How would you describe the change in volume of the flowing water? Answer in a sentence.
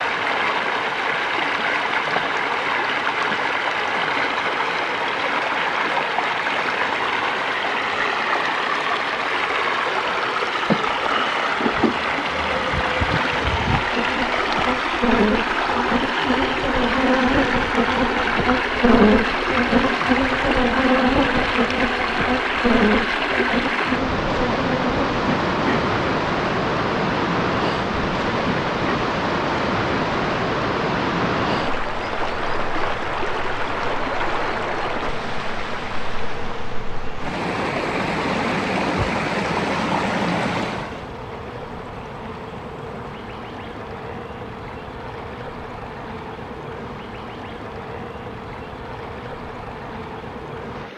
The loudness of the flowing water goes down.